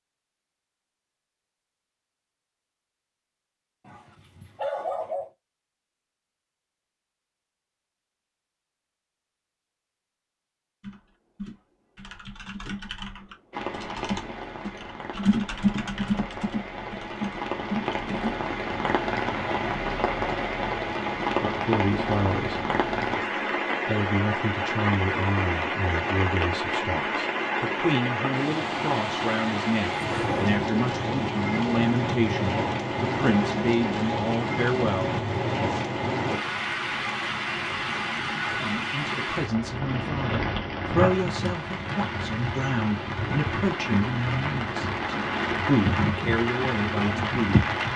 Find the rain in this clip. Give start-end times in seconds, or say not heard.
13.5-47.9.